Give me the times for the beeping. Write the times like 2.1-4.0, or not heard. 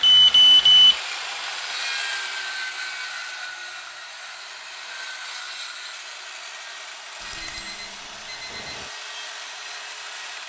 0.0-0.9, 7.2-8.9.